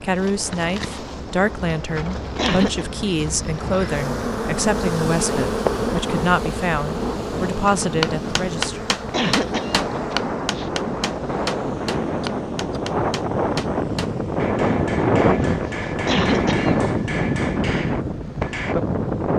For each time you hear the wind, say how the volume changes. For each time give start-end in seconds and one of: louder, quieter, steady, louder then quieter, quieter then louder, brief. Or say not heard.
0.0-19.3 louder.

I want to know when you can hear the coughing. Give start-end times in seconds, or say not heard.
2.4-2.9, 9.1-10.7, 15.4-16.8.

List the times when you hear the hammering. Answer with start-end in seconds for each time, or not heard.
7.5-18.8.